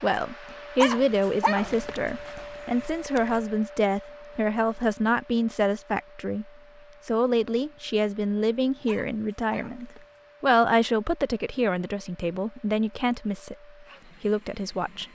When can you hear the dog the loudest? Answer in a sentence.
The volume of the dog peaks at 1 second.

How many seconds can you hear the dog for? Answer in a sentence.
The dog can be heard for 4 seconds in total.